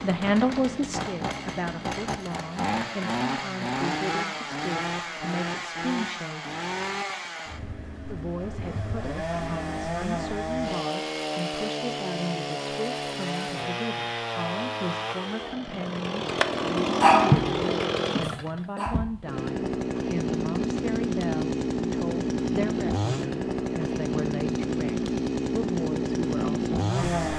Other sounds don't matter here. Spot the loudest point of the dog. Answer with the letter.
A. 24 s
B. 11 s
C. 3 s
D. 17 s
D.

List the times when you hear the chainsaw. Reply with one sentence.
The chainsaw can be heard from 0.0 to 27.3 s.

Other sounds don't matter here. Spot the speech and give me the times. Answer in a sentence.
The speech can be heard from 0.0 to 6.5 s and from 8.1 to 27.2 s.